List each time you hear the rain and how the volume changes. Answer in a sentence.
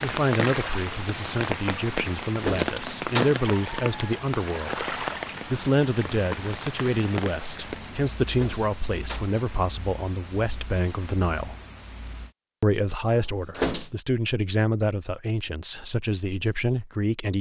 The rain can be heard from 0.0 to 12.3 s, getting quieter.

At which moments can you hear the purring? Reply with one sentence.
You can't hear the purring here.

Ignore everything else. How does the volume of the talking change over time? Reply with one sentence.
The loudness of the talking stays about the same.